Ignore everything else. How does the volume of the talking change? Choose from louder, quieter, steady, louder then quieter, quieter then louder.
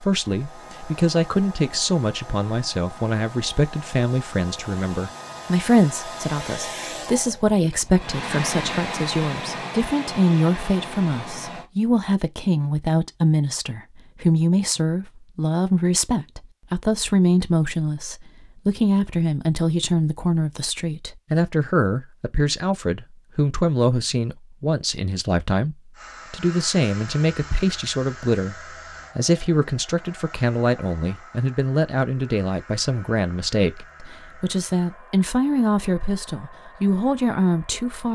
steady.